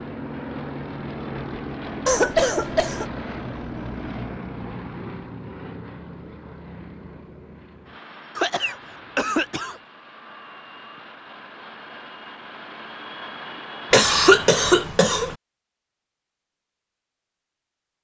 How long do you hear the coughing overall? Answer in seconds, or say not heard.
4 s.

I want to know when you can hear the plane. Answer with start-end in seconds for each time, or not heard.
0.0-14.9.